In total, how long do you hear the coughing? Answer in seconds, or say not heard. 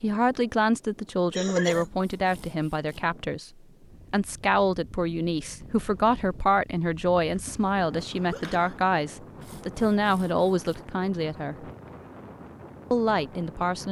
2 s.